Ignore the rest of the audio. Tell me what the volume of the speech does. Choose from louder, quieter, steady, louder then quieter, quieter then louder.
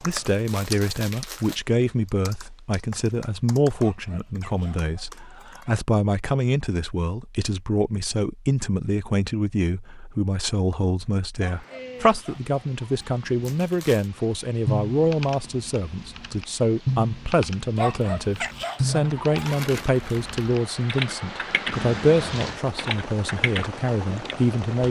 steady.